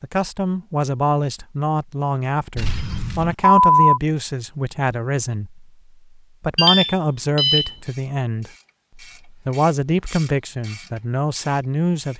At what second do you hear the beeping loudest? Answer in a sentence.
The loudest moment of the beeping is at 4 seconds.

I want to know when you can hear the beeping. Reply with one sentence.
The beeping can be heard from 2.5 to 4.0 s and from 6.5 to 7.7 s.